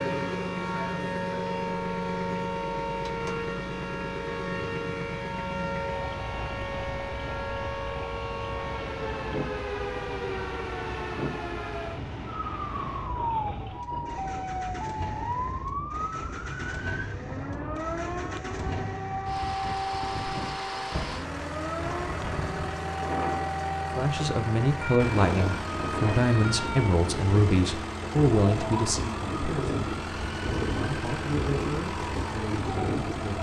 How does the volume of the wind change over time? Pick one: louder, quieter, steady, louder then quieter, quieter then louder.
louder.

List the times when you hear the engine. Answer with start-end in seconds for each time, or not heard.
0.0-33.3.